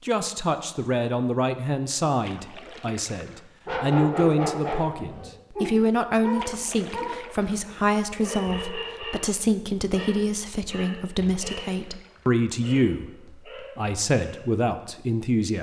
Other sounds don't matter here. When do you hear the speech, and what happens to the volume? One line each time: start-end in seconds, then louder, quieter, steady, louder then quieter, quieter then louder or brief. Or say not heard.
0.0-13.1 steady
13.8-15.5 brief.